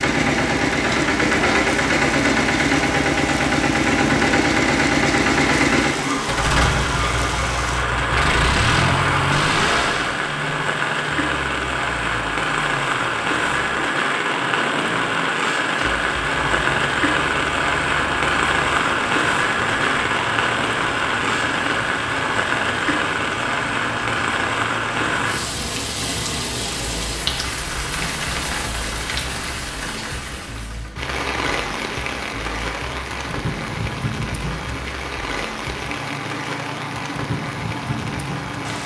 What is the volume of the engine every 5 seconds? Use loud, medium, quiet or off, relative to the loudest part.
loud, loud, quiet, quiet, quiet, quiet, quiet, quiet.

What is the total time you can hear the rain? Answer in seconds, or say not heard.
39 s.